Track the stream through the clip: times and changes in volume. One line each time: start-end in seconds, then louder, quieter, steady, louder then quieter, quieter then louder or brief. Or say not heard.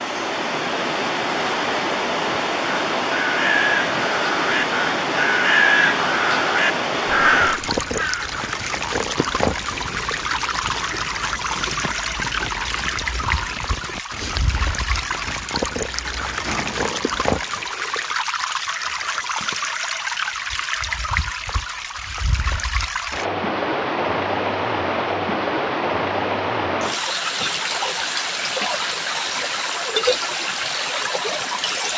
0.0-31.9 steady.